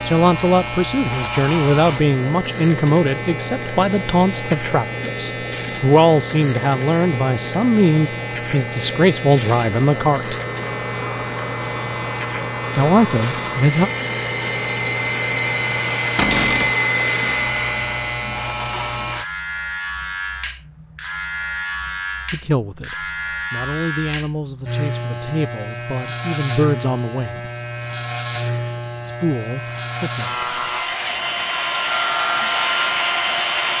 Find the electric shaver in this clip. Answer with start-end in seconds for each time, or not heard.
0.0-33.7.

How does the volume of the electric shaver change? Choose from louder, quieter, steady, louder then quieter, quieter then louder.
steady.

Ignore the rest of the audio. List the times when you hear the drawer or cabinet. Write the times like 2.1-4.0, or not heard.
16.1-16.8.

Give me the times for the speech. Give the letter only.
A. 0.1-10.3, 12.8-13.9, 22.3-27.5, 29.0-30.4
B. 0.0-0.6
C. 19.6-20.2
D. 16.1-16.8
A.